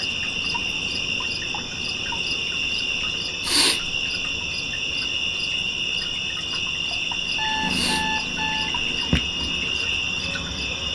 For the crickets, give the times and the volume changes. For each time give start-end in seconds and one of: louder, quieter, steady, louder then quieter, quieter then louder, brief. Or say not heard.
0.0-10.9 steady.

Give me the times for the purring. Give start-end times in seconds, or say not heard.
7.5-10.9.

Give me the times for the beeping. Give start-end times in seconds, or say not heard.
7.3-8.7.